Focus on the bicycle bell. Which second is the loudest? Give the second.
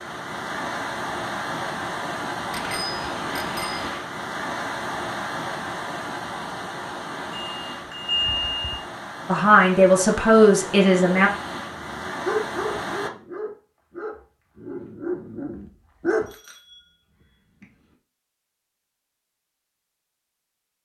8 s.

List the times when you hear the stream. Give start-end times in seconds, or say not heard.
0.0-13.1.